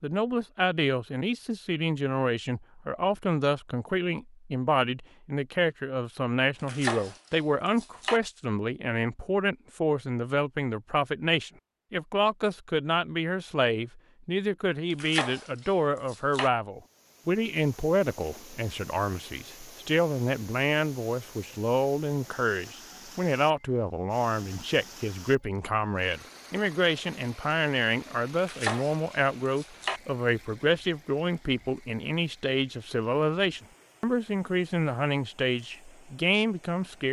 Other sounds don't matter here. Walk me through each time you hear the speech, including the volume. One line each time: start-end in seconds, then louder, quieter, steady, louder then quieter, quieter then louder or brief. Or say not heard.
0.0-37.0 steady.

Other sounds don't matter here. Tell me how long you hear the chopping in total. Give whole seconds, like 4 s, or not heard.
5 s.